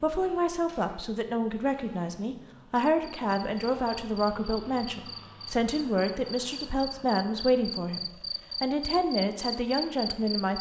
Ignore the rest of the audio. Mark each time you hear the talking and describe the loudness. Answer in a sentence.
You can hear the talking from 0.0 to 10.5 s, at a steady volume.